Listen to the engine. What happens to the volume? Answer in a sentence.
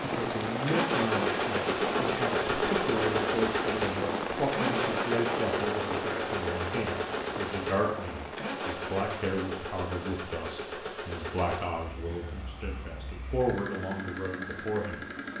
The volume of the engine goes down.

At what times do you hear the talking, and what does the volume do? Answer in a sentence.
The talking can be heard from 0.0 to 15.3 s, at a steady volume.